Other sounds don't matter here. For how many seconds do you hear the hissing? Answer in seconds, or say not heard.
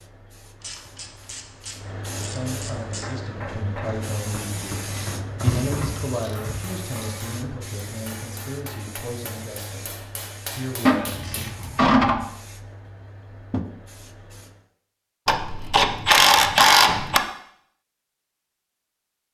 15 s.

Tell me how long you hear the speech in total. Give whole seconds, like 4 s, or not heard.
9 s.